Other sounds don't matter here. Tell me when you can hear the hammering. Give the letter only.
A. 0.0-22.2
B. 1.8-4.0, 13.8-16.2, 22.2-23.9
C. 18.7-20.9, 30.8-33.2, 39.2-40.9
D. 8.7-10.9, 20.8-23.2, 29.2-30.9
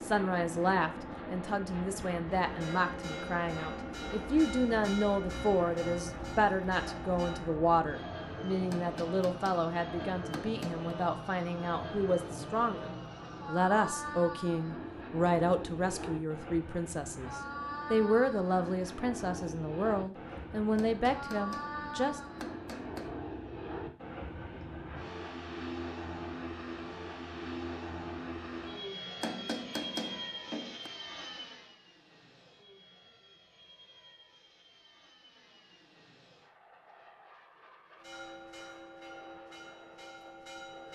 D.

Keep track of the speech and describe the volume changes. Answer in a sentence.
The loudness of the speech stays about the same.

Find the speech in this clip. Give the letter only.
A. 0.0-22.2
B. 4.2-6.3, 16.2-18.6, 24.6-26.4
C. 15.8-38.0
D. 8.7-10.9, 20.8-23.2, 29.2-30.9
A.